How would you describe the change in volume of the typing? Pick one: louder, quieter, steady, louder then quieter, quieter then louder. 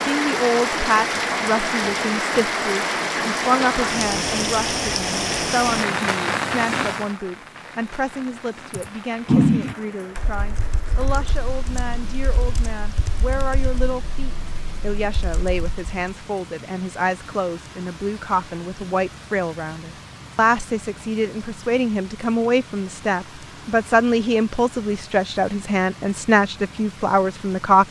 quieter.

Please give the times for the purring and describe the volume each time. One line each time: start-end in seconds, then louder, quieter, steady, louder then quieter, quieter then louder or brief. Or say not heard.
not heard.